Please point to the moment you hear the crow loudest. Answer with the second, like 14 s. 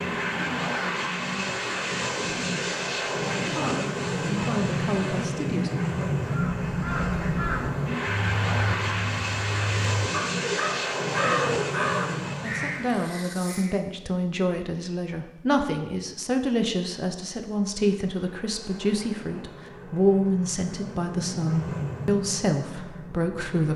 11 s.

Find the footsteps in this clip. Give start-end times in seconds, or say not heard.
not heard.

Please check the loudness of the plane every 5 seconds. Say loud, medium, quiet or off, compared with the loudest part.
loud, loud, loud, quiet, medium.